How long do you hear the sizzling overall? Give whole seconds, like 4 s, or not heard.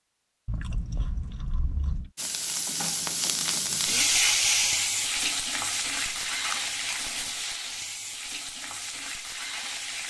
8 s.